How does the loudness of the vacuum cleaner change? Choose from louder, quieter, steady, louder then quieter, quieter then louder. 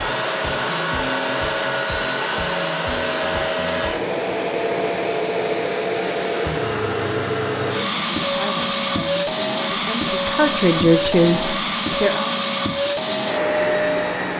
steady.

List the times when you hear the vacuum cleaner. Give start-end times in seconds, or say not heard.
0.0-14.3.